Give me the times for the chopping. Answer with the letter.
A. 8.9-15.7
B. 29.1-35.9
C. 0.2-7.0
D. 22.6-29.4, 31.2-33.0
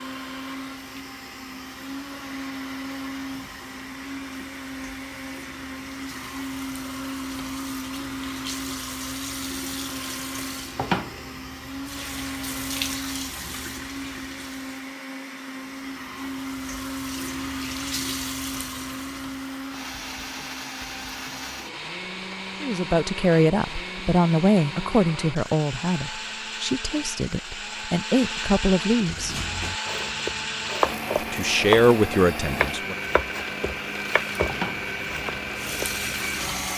B.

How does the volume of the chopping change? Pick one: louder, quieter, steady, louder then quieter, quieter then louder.
louder then quieter.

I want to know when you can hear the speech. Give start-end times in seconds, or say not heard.
22.6-29.4, 31.2-33.0.